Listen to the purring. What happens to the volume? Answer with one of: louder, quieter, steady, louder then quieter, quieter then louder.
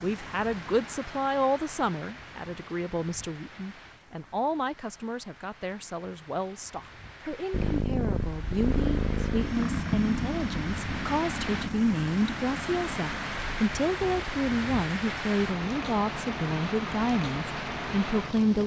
quieter.